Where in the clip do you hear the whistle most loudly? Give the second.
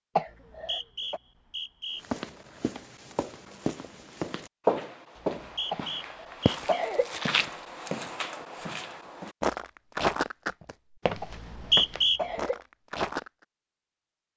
12 s.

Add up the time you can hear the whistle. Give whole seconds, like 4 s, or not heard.
4 s.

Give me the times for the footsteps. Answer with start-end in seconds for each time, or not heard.
2.0-13.3.